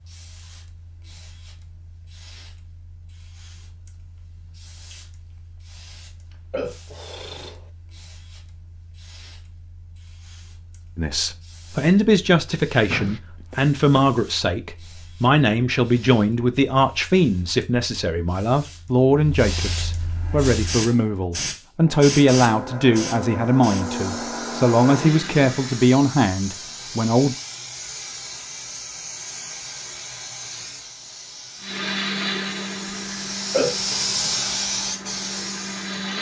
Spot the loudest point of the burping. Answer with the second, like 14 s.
34 s.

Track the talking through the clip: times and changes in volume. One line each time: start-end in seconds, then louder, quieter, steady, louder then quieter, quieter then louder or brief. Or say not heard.
10.9-27.4 steady.